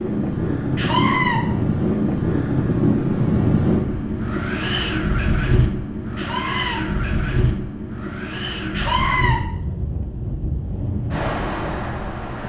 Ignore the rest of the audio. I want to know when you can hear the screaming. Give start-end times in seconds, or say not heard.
0.8-1.4, 6.2-6.8, 8.7-9.3.